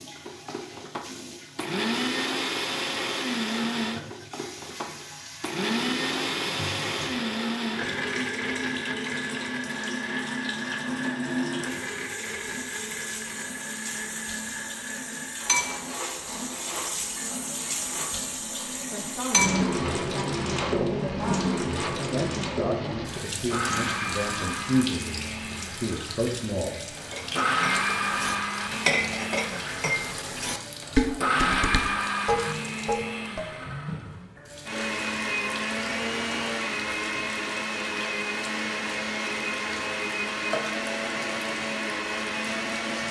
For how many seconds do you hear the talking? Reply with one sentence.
The talking can be heard for 8 seconds in total.